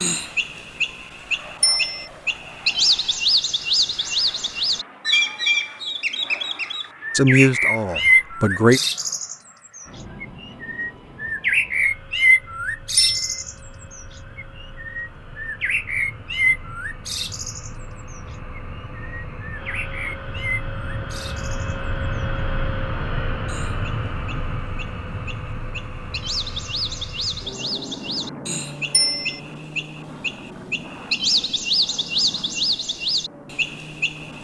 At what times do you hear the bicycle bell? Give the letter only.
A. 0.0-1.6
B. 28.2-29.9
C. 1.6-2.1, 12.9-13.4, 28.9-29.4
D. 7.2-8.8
C.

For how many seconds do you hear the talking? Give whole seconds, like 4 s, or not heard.
2 s.